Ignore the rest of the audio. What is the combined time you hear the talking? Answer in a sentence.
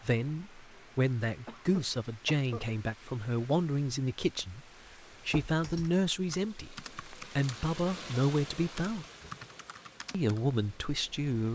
You can hear the talking for 10 seconds altogether.